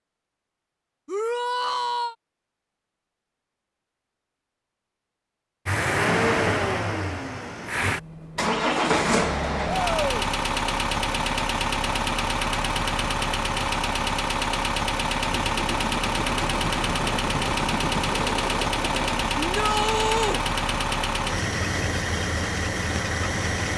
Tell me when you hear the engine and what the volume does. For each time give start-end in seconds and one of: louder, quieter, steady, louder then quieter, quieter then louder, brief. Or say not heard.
5.7-23.7 steady.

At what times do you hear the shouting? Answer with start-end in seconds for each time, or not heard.
1.1-2.1, 9.7-10.2, 19.4-20.4.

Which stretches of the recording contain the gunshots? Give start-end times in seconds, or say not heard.
15.3-19.3.